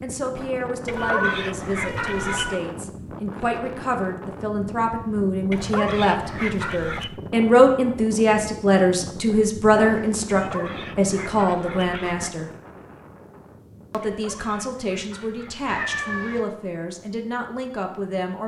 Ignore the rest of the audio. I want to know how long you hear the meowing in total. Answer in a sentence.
The meowing can be heard for 3 seconds in total.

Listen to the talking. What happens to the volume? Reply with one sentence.
The volume of the talking goes up, then down.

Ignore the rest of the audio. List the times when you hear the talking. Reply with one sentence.
You can hear the talking from 0.0 to 12.5 s and from 13.9 to 18.4 s.